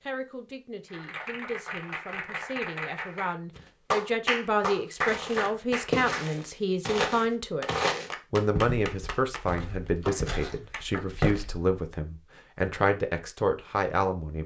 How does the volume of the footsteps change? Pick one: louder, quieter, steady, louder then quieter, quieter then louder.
quieter then louder.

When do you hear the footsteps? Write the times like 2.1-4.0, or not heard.
5.0-11.7.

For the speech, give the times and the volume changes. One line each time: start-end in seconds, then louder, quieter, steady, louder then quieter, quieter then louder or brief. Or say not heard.
0.0-14.4 louder.